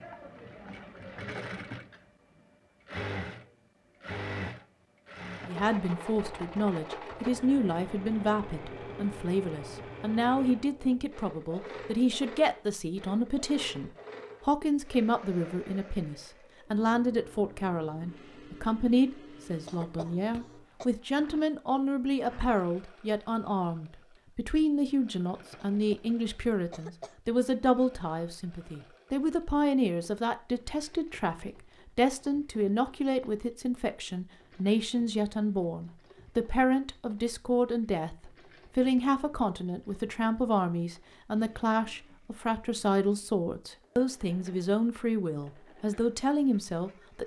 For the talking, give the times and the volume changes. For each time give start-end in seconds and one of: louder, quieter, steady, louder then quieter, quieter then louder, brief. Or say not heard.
5.5-47.2 steady.